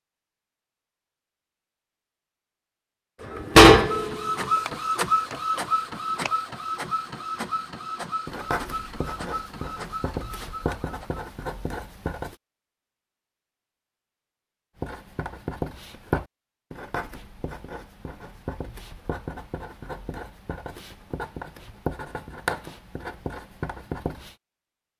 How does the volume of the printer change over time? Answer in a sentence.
The loudness of the printer goes down.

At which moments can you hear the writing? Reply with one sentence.
You can hear the writing from 8.2 to 12.3 s and from 14.8 to 24.4 s.